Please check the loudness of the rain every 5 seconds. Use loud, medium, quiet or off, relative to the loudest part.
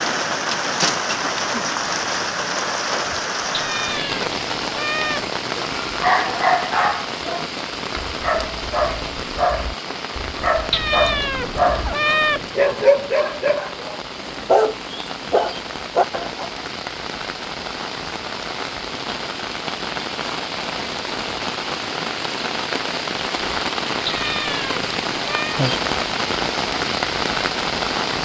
loud, medium, medium, medium, loud, loud.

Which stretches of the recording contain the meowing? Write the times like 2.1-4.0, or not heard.
3.5-5.3, 10.7-12.5, 24.1-25.6.